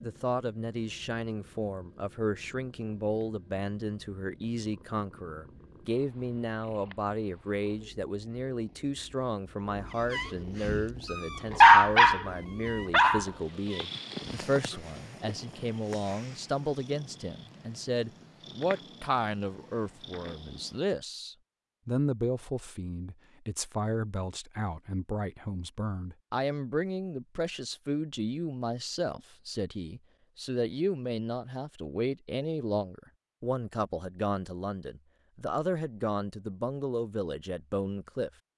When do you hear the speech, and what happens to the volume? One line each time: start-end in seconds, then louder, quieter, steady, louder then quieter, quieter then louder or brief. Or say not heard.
0.0-38.3 steady.